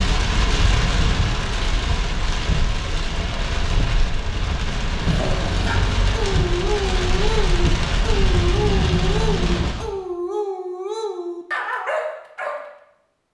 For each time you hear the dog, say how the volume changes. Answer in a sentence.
You can hear the dog from 5.0 to 12.7 s, at a steady volume.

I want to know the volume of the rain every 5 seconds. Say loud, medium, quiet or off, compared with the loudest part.
loud, loud, off.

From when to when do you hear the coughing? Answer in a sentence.
You can't hear the coughing here.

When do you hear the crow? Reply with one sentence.
The crow can't be heard in this clip.